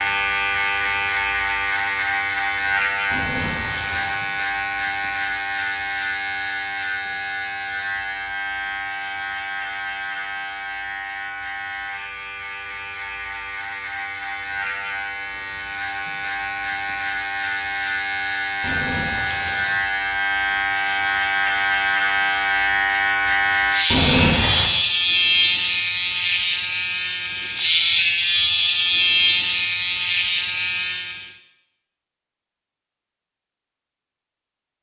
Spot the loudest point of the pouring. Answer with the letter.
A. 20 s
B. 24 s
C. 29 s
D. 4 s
B.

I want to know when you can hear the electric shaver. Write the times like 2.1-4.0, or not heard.
0.0-31.4.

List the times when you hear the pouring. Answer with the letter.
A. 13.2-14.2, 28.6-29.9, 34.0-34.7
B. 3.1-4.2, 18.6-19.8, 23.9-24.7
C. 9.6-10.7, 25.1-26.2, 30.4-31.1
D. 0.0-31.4
B.